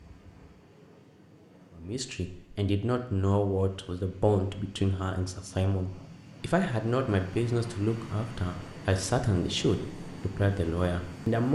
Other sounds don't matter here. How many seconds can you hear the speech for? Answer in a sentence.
You can hear the speech for 10 seconds altogether.